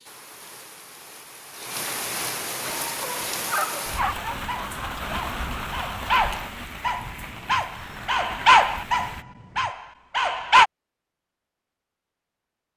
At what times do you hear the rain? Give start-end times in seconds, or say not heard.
0.0-9.2.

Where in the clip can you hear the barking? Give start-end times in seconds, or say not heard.
2.6-10.7.